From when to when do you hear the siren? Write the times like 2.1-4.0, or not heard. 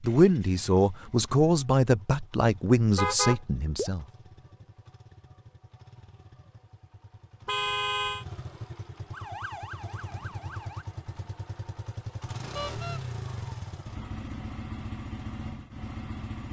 9.1-10.8.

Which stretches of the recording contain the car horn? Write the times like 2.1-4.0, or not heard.
3.0-3.9, 7.5-8.2, 12.6-13.0.